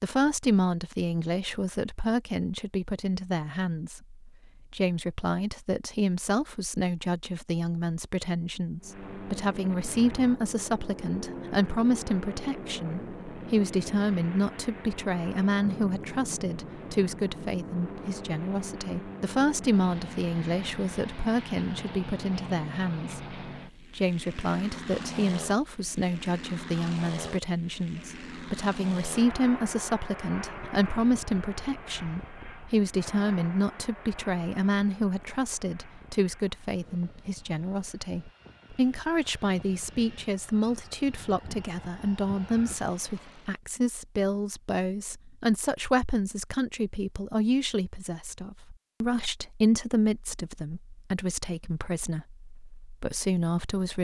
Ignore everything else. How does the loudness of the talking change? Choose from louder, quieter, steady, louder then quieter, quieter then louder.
steady.